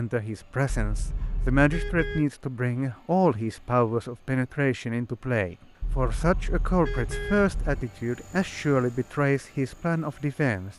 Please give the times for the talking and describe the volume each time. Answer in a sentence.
The talking can be heard from 0.0 to 10.7 s, at a steady volume.